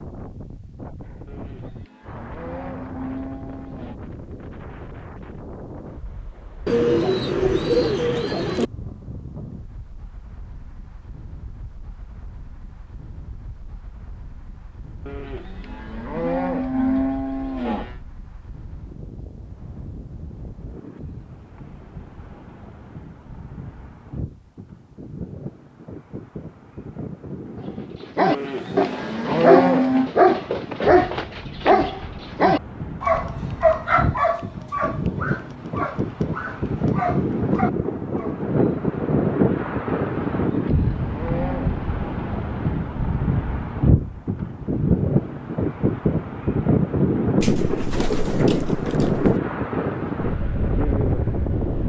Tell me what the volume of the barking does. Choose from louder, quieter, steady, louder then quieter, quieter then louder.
quieter.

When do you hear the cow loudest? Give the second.
30 s.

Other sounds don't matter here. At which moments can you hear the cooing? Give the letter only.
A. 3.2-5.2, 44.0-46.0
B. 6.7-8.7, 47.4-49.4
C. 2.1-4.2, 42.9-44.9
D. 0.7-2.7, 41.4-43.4
B.